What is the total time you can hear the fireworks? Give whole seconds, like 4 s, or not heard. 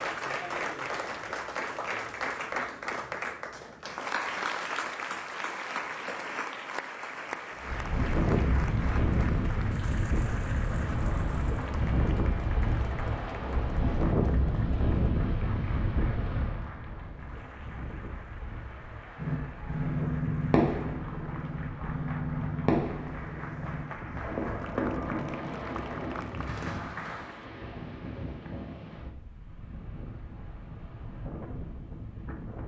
8 s.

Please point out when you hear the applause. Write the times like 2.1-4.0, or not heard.
0.0-27.5.